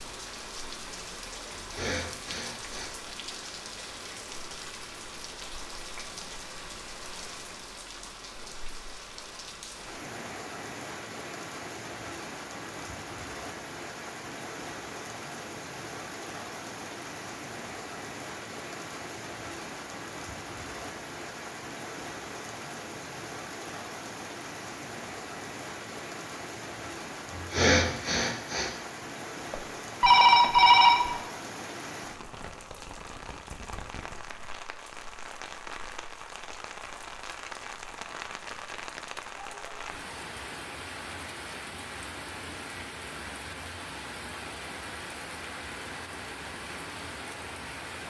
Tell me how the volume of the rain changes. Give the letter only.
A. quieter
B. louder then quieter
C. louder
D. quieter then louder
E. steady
E.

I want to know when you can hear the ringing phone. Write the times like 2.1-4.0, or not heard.
29.5-31.2.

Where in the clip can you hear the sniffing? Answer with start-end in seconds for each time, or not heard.
1.5-2.9, 27.4-28.7.